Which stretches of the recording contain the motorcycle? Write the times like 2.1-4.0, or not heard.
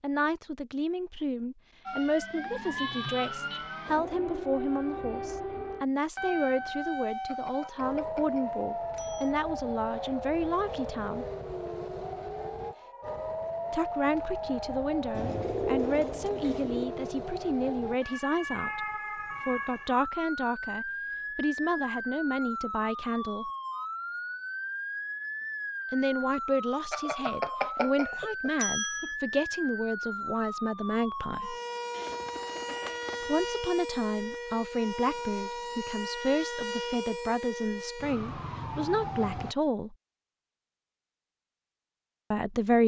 not heard.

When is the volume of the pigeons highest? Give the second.
16 s.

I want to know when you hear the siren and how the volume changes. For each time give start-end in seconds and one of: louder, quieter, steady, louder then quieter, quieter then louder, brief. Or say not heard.
1.9-39.5 steady.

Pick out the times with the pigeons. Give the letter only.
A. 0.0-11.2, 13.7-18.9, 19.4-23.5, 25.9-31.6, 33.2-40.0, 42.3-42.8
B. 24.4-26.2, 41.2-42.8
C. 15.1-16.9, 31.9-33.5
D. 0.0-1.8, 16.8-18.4
C.